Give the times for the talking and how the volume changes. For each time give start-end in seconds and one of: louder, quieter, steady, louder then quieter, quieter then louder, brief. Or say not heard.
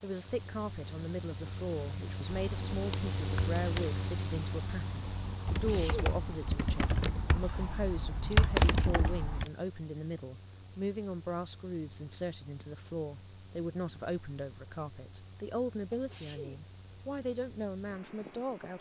0.0-18.7 steady.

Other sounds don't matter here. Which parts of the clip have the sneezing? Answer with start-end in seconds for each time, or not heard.
5.5-6.2, 15.9-16.6.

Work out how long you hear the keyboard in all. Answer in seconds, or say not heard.
7 s.